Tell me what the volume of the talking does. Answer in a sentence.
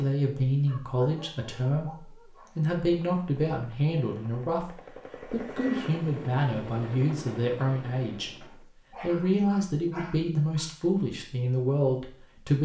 The loudness of the talking stays about the same.